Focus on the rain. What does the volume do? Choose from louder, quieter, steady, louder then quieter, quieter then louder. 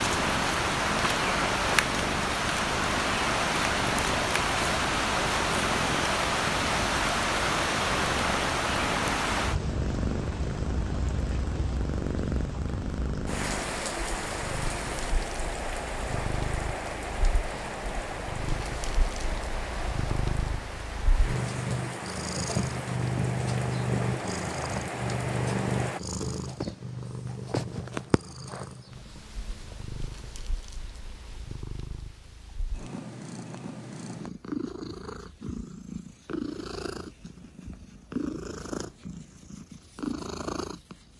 quieter.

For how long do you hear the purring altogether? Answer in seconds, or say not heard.
41 s.